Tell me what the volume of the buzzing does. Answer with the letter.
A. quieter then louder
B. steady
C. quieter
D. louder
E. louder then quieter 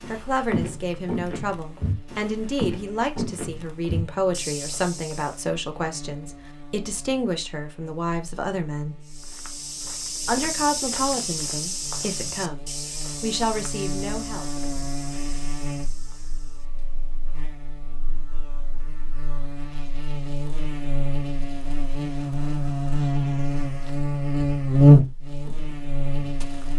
D.